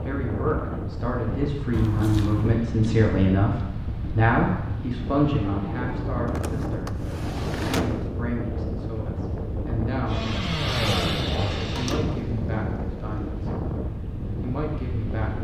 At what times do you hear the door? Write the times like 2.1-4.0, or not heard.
1.7-2.6, 6.2-8.1, 11.8-12.2.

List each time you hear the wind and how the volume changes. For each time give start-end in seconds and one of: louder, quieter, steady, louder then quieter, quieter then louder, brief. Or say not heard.
0.0-15.3 steady.